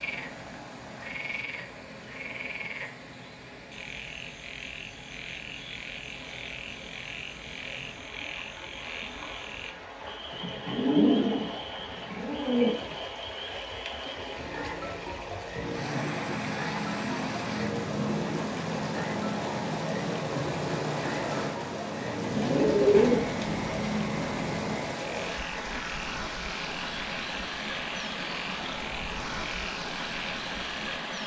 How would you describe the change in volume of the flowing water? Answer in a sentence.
The volume of the flowing water goes up.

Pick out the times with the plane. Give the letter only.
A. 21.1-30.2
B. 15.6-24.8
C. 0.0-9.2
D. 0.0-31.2
B.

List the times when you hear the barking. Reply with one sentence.
You can't hear the barking here.